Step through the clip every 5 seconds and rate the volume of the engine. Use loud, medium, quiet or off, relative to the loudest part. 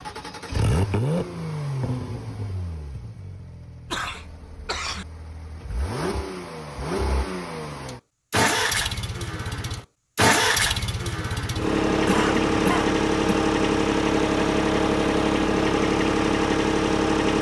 medium, medium, loud, loud.